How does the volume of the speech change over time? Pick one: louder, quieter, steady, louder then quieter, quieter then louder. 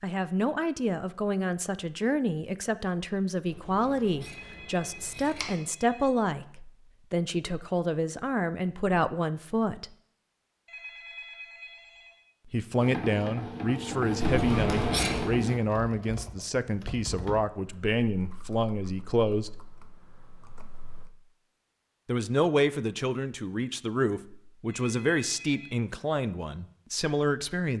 steady.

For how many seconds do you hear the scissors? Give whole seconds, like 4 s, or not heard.
3 s.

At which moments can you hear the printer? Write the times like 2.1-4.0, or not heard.
12.8-15.7.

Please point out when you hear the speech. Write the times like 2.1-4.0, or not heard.
0.0-9.9, 12.4-19.5, 22.1-27.7.